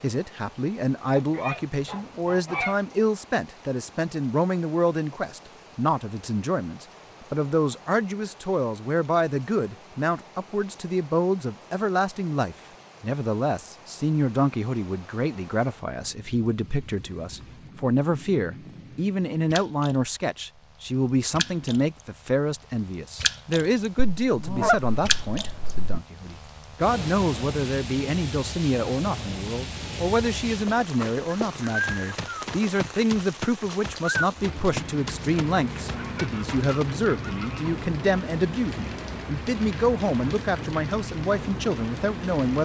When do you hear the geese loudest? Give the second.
25 s.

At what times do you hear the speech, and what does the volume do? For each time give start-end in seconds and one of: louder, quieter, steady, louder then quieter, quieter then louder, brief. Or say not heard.
0.0-42.6 steady.